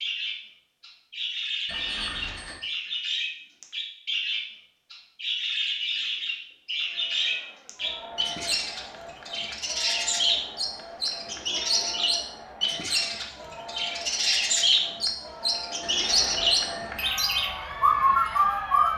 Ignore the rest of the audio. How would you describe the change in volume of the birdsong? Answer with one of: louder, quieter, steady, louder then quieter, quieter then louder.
louder.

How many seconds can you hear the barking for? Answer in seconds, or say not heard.
not heard.